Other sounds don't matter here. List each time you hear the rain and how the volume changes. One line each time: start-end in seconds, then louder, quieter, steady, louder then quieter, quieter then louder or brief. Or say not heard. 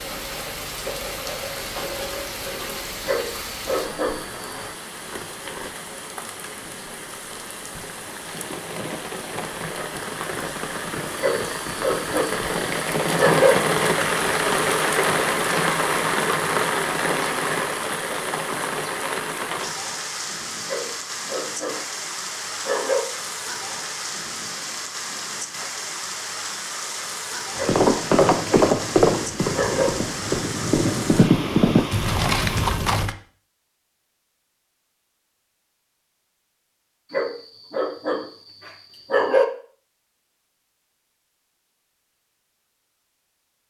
0.0-32.7 louder then quieter.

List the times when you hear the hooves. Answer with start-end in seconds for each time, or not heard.
27.6-33.1.